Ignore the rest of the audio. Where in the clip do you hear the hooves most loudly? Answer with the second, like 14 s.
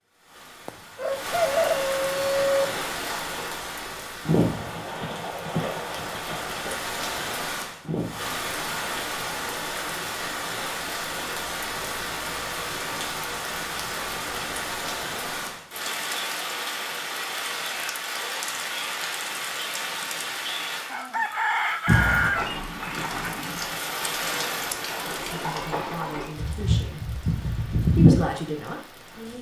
28 s.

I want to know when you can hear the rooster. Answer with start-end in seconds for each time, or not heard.
0.7-2.7, 20.9-22.4.